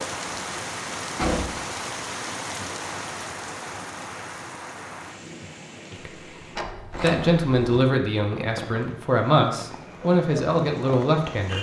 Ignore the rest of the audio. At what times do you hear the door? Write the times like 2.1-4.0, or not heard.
1.1-1.8, 6.5-7.8.